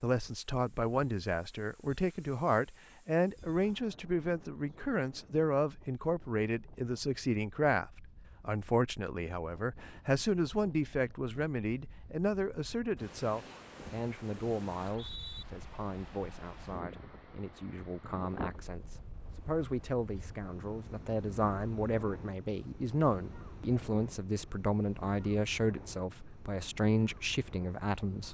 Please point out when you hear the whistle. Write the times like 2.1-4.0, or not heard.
14.8-15.4.